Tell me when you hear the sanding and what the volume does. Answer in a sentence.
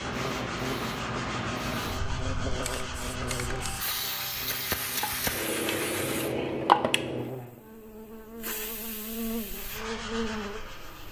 You can hear the sanding from 0.0 to 6.3 s, at a steady volume; and briefly from 9.6 to 11.0 s.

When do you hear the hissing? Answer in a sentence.
You can hear the hissing from 0.0 to 11.0 s.